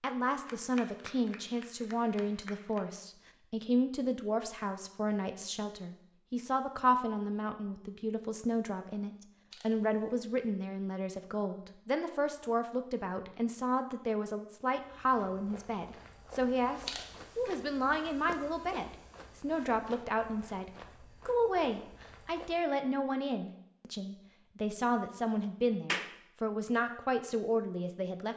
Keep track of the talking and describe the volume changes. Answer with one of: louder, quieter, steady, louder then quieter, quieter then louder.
steady.